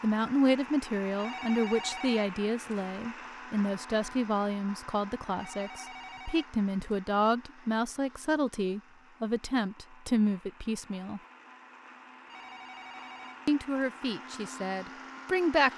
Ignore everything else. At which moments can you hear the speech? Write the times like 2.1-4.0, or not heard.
0.0-11.2, 13.4-15.7.